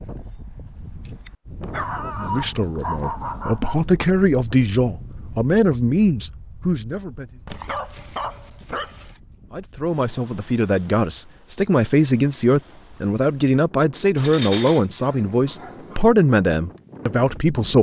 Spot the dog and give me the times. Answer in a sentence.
You can hear the dog from 1.6 to 3.9 s, from 7.5 to 9.2 s and from 14.2 to 16.1 s.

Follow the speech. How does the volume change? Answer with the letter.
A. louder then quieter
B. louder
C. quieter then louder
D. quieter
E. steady
E.